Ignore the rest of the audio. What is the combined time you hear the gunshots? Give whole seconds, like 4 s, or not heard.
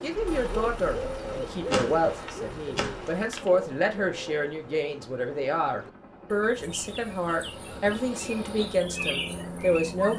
2 s.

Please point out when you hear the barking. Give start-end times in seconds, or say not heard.
not heard.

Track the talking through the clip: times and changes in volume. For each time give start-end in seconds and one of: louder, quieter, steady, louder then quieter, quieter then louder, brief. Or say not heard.
0.0-10.1 steady.